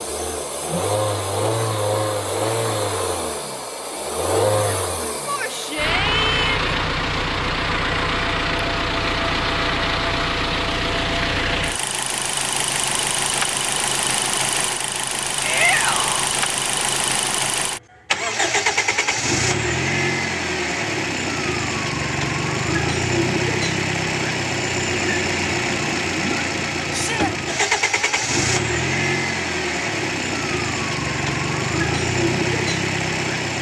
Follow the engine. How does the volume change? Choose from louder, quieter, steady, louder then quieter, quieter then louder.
steady.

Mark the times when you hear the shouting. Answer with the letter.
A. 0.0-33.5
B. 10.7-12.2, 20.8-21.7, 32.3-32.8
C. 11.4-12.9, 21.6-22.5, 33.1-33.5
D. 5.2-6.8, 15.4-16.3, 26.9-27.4
D.